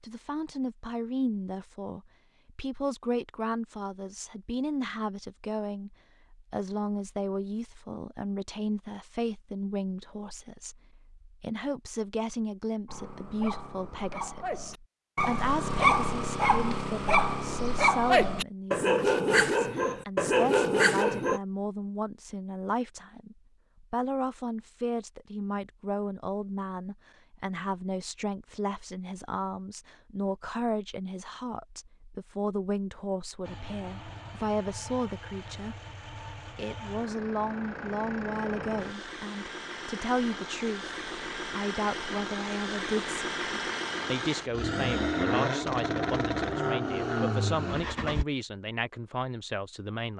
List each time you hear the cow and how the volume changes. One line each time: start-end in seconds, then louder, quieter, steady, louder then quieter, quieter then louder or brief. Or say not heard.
not heard.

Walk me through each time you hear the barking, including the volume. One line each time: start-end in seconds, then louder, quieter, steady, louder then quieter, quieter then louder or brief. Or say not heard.
12.8-21.4 louder.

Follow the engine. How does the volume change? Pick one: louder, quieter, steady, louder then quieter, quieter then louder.
louder.